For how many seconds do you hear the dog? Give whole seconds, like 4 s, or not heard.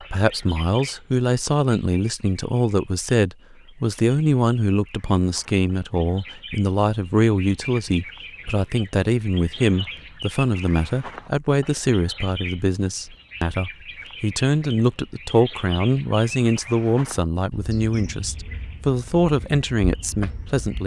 not heard.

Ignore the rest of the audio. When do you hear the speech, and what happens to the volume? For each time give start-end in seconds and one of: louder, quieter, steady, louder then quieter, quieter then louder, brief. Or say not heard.
0.0-20.8 steady.